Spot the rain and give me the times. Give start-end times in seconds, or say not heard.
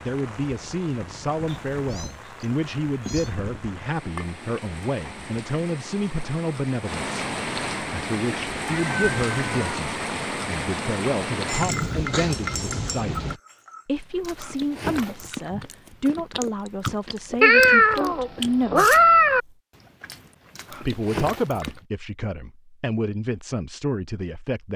0.0-13.4.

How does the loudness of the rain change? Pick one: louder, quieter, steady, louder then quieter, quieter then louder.
louder.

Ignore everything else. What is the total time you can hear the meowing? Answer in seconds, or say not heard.
5 s.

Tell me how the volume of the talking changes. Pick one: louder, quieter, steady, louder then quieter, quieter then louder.
steady.